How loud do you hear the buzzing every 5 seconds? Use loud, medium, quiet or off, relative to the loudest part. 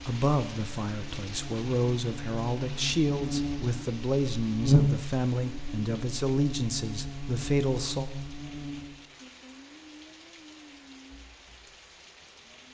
loud, medium, off.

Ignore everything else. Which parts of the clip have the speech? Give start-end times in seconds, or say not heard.
0.1-8.1.